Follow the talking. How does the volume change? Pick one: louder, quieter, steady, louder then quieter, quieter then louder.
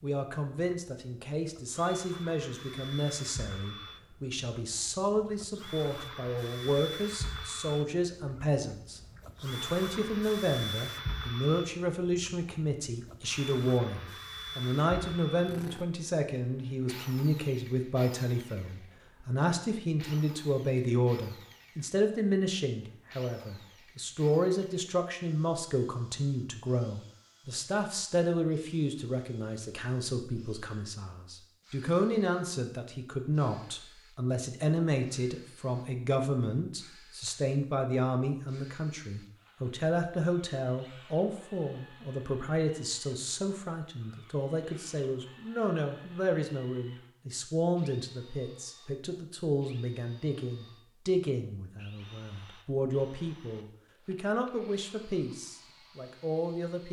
steady.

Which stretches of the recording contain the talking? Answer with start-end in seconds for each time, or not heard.
0.0-56.8.